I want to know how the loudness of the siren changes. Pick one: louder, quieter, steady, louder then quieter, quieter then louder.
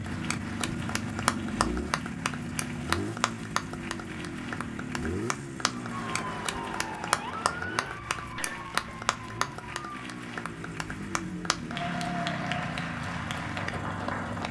quieter.